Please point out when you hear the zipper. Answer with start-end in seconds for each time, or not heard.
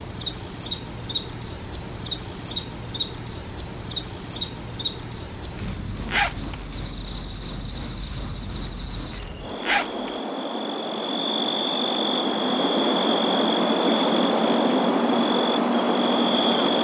5.5-6.7, 9.1-10.2.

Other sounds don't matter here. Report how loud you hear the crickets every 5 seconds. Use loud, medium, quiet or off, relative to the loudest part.
medium, quiet, loud, loud.